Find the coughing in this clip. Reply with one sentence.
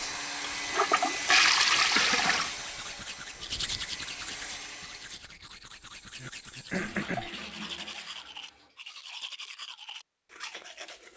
The coughing can be heard from 1.4 to 2.5 s and from 6.2 to 7.3 s.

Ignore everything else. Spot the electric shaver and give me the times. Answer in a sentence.
You can't hear the electric shaver here.